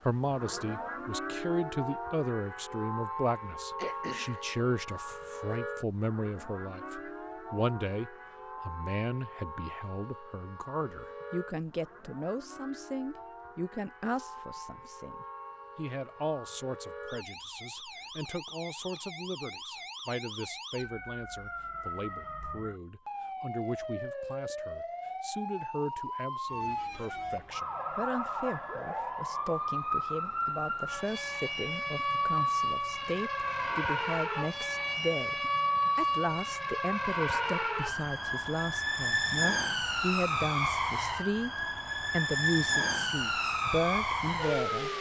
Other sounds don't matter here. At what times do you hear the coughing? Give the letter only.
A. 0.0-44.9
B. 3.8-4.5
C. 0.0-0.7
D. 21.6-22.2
B.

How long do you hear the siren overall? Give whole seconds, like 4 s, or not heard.
45 s.